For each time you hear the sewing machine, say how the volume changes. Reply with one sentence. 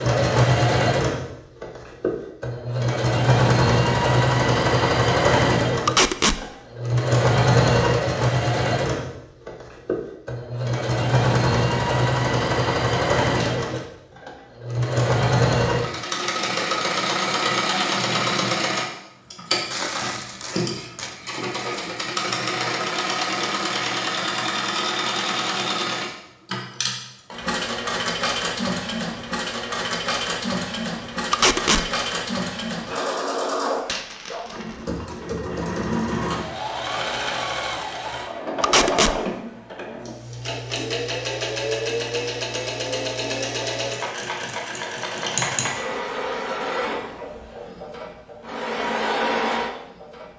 The sewing machine can be heard from 0.0 to 50.3 s, getting quieter.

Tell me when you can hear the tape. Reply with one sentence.
You can hear the tape from 5.8 to 6.3 s, from 31.3 to 31.9 s and from 38.6 to 39.1 s.